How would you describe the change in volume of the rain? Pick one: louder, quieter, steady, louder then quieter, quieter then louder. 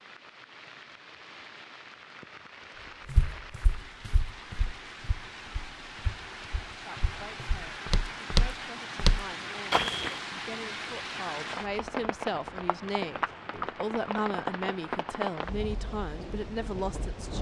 louder.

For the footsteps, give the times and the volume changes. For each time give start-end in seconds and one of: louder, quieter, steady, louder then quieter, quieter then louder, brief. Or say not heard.
3.0-10.2 quieter then louder.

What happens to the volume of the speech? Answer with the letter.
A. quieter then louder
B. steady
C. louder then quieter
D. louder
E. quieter
D.